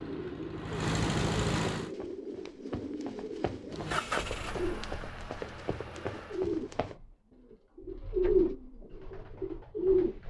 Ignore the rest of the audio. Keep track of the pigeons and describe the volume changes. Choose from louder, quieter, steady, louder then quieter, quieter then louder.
louder.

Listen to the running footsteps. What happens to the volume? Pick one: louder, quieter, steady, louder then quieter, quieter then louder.
louder.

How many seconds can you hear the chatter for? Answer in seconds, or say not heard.
not heard.